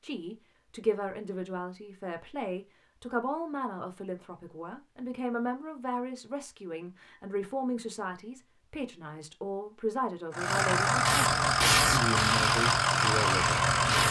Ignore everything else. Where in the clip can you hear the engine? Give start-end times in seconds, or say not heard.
10.3-14.0.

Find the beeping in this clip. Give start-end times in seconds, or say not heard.
not heard.